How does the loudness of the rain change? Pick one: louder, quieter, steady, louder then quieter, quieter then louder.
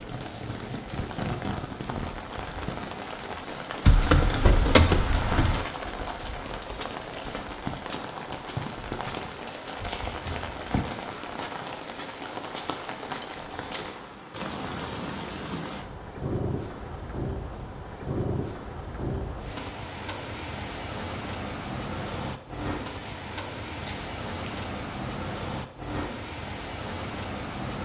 steady.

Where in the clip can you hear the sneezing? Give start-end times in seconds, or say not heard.
not heard.